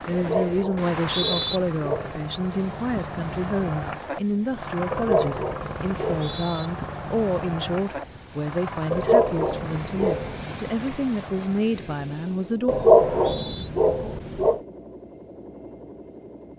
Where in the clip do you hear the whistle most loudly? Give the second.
1 s.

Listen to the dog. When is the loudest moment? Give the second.
13 s.